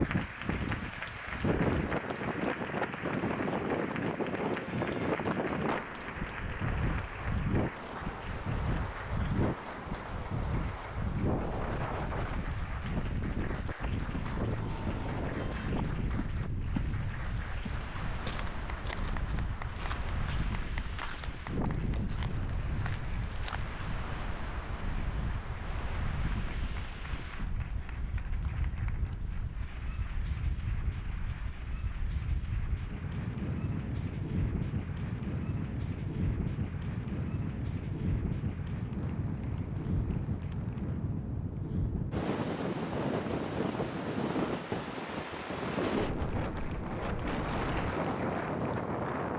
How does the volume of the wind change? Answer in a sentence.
The loudness of the wind goes down, then up.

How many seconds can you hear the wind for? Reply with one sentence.
The wind can be heard for 49 seconds in total.